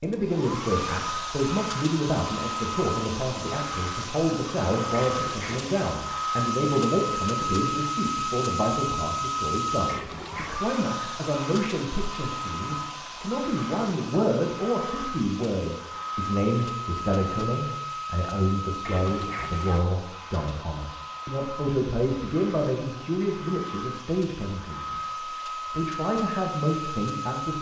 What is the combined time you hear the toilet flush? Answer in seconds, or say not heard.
3 s.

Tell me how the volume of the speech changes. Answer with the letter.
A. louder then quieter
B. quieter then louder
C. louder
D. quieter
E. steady
E.